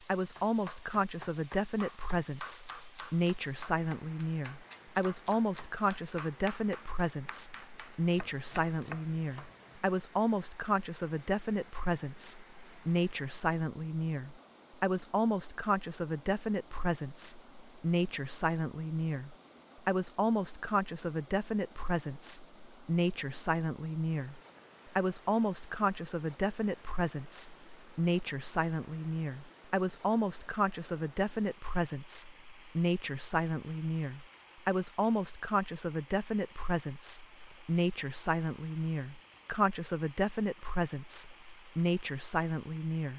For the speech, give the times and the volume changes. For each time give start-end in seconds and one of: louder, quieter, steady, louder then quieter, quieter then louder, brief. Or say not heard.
0.1-43.1 steady.